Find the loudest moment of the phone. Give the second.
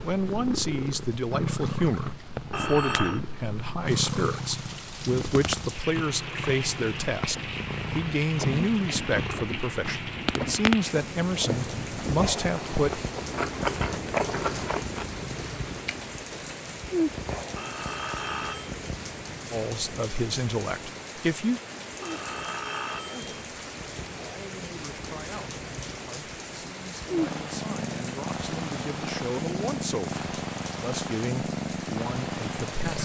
3 s.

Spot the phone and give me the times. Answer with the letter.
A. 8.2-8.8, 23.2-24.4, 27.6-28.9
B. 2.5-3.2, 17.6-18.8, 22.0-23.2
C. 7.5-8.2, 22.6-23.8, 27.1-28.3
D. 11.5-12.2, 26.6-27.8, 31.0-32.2
B.